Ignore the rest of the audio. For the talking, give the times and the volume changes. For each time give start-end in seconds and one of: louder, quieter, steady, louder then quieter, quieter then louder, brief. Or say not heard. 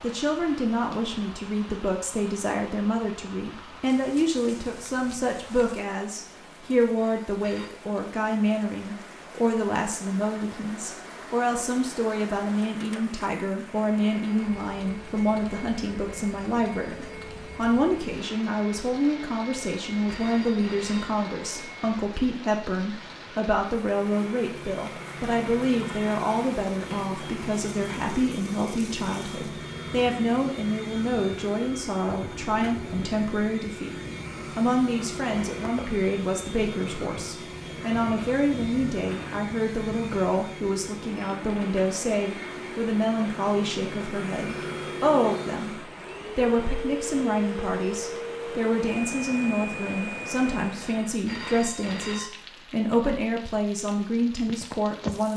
0.0-55.3 steady.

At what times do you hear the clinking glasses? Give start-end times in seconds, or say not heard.
not heard.